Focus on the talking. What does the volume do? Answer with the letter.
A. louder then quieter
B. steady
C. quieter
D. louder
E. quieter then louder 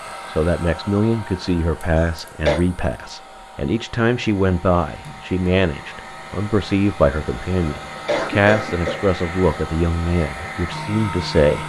B.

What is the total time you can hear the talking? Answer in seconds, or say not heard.
11 s.